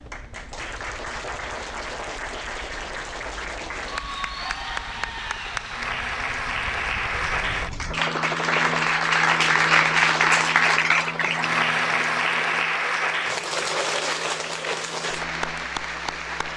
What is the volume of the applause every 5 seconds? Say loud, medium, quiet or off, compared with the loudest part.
medium, loud, loud, medium.